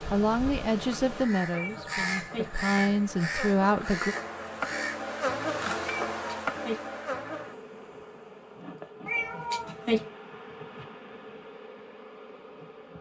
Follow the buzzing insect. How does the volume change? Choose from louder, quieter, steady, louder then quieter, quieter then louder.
louder then quieter.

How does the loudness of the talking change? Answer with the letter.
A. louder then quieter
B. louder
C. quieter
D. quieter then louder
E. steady
D.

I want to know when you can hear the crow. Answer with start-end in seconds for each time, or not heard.
0.0-5.0.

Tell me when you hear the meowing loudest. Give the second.
10 s.